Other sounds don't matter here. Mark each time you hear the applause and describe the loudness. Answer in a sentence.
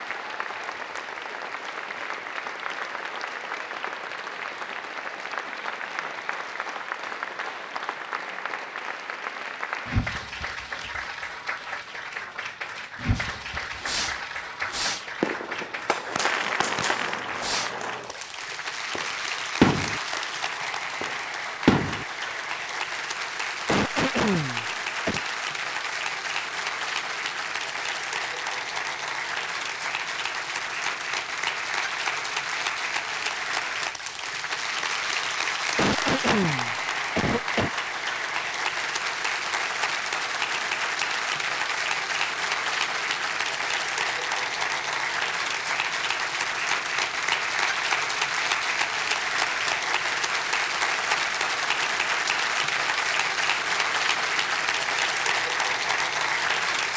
The applause can be heard from 0.0 to 56.9 s, getting louder.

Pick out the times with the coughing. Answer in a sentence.
The coughing can be heard from 23.6 to 25.2 s and from 35.8 to 37.7 s.